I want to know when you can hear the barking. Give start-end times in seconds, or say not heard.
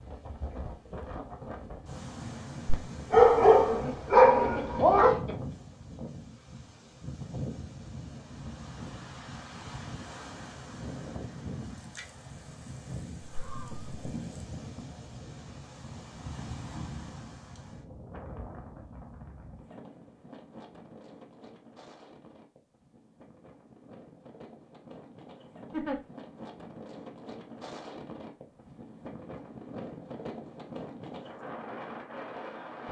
2.6-5.2.